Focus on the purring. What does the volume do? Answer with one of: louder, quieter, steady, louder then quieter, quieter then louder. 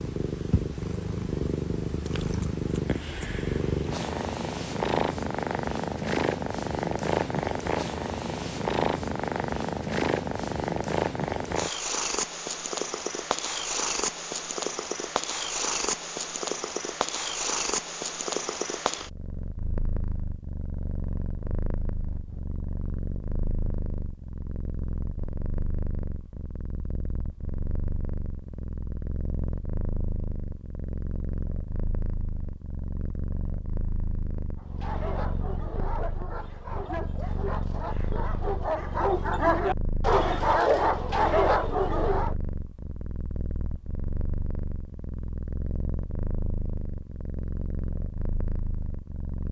quieter.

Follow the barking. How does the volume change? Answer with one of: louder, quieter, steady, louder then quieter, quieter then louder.
louder.